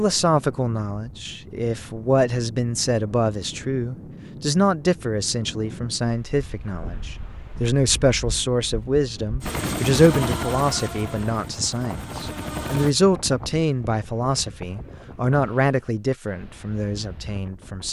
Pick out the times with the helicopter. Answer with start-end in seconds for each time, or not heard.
9.4-12.9.